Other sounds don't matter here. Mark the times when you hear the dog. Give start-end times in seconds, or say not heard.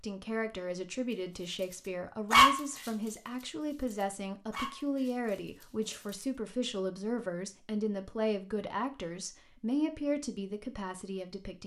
1.1-6.2.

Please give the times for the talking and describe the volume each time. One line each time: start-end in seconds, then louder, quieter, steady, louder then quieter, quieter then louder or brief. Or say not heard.
0.0-11.6 steady.